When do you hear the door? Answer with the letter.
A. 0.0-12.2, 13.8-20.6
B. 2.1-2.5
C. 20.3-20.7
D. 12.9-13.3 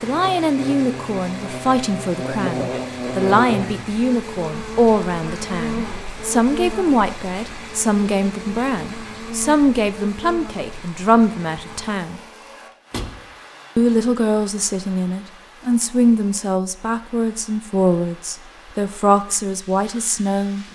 D.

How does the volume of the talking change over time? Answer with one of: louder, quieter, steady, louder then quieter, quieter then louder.
steady.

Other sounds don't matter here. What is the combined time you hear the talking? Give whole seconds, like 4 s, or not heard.
19 s.